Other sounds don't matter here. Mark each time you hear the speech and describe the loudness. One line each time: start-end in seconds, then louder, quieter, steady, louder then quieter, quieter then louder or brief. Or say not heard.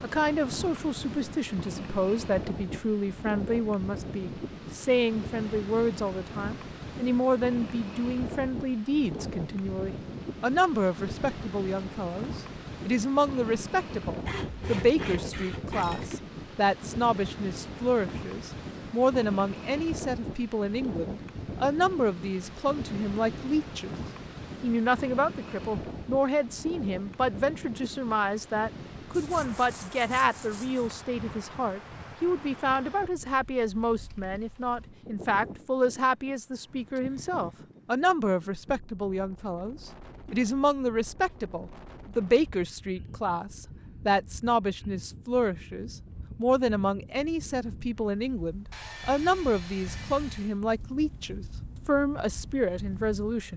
0.0-24.0 steady
24.6-53.5 steady.